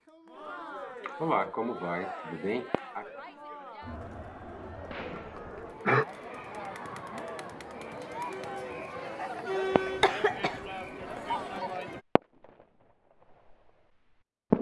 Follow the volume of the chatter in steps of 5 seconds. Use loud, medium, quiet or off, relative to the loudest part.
medium, loud, loud.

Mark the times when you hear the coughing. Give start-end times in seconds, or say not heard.
1.0-3.0, 5.4-6.0, 9.8-11.6.